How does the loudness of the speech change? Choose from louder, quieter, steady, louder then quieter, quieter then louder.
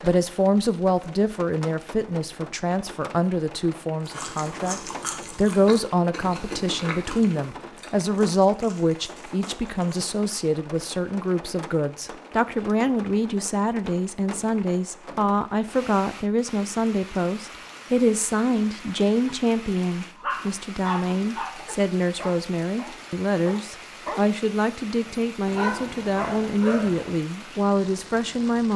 steady.